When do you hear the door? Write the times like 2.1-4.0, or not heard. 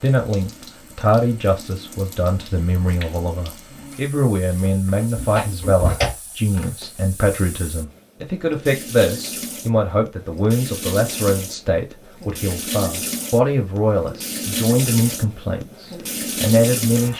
5.2-6.2.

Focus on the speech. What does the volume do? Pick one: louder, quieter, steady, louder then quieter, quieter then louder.
steady.